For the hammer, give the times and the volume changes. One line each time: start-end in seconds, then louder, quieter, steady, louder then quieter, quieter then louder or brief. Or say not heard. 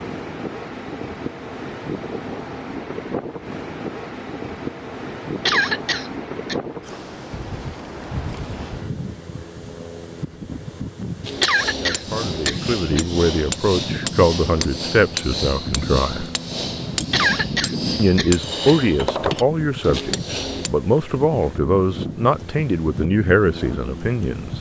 11.2-20.7 steady.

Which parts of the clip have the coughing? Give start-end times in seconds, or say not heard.
5.5-6.5, 11.4-13.1, 17.1-18.8.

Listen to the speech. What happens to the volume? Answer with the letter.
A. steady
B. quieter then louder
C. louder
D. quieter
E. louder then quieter
A.